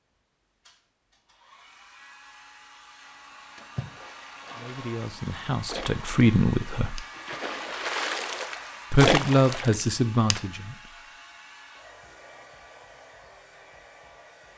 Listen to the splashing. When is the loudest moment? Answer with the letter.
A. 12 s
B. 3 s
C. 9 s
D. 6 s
C.